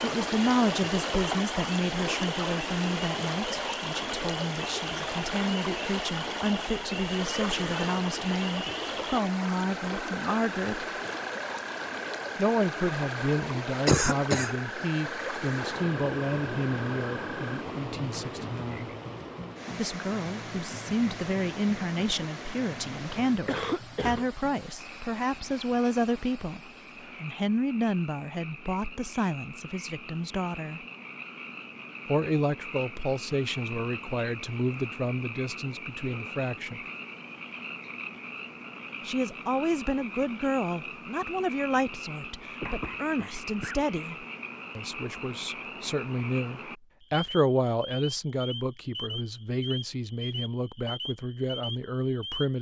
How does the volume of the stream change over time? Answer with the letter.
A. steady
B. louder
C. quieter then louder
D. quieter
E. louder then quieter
D.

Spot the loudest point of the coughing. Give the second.
14 s.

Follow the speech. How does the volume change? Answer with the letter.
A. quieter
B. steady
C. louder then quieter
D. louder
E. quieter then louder
B.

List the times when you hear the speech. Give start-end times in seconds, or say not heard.
0.0-10.8, 12.3-18.9, 19.8-26.6, 27.2-30.8, 32.0-36.8, 39.0-52.5.